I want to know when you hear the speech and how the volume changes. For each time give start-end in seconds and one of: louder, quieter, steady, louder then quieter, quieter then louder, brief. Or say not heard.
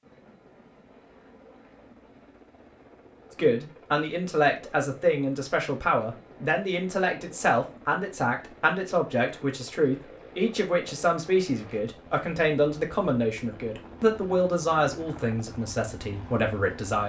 3.4-17.0 steady.